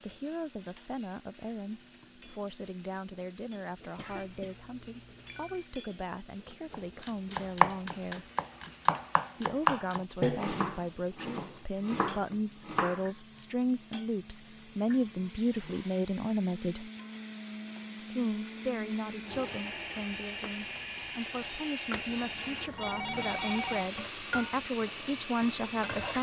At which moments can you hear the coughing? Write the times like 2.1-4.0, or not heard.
4.0-4.5.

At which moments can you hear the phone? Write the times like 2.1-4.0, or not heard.
4.0-5.7, 22.1-23.9.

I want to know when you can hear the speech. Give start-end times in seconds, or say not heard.
0.0-8.2, 9.4-16.9, 17.9-26.1.